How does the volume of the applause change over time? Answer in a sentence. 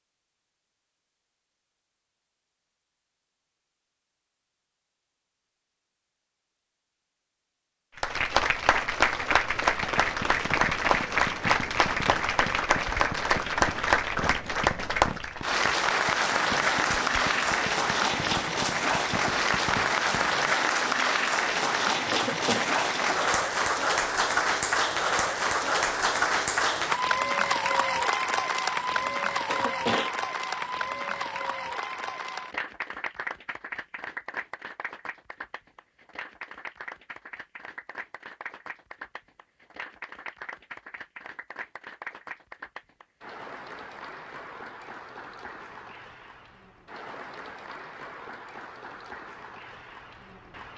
The volume of the applause goes down.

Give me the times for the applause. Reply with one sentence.
The applause can be heard from 8.0 to 50.7 s.